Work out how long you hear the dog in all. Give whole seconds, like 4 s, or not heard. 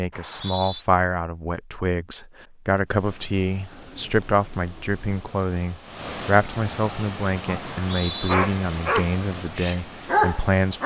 4 s.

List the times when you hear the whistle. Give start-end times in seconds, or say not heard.
0.1-0.8, 7.7-8.3.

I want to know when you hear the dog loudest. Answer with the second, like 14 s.
10 s.